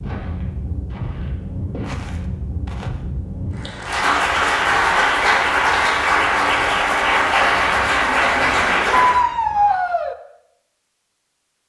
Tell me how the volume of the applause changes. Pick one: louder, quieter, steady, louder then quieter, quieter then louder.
steady.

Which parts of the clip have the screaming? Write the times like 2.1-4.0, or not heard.
9.0-10.2.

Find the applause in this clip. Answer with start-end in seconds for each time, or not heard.
3.5-9.2.